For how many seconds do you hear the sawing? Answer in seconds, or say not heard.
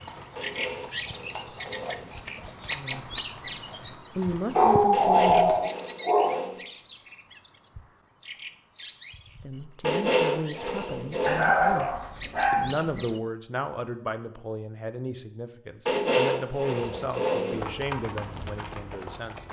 7 s.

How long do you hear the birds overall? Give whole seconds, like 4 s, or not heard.
13 s.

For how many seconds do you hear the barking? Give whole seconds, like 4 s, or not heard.
4 s.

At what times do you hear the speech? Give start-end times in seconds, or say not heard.
2.7-3.2, 4.1-5.7, 9.4-19.4.